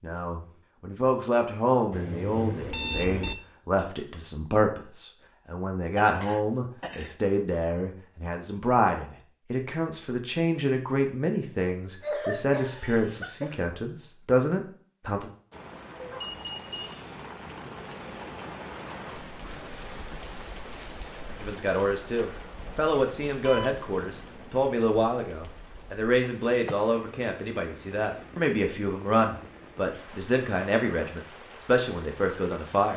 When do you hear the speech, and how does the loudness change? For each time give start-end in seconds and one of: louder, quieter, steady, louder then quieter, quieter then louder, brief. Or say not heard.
0.0-15.3 steady
21.4-32.9 steady.